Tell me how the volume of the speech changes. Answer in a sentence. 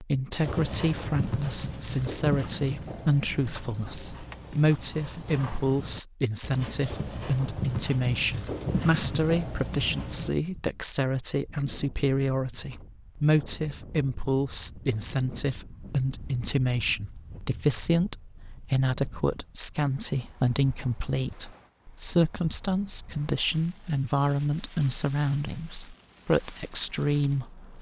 The volume of the speech stays about the same.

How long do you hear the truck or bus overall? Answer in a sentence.
The truck or bus can't be heard in this clip.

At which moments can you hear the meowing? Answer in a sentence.
You can't hear the meowing here.